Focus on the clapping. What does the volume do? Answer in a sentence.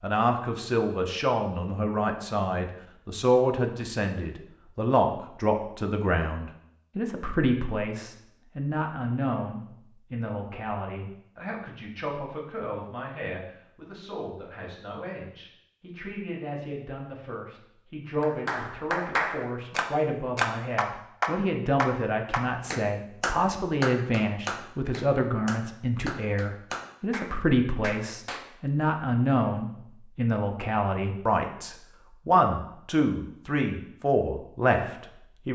The loudness of the clapping goes down.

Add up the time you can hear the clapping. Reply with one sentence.
The clapping can be heard for 10 seconds in total.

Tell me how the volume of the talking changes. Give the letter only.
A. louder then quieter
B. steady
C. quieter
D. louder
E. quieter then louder
E.